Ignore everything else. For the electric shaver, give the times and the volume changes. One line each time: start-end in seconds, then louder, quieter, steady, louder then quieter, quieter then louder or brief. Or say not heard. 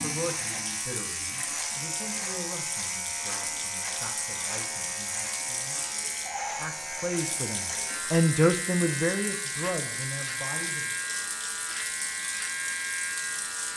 0.0-13.7 steady.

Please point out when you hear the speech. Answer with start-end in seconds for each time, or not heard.
0.0-5.8, 6.5-10.9.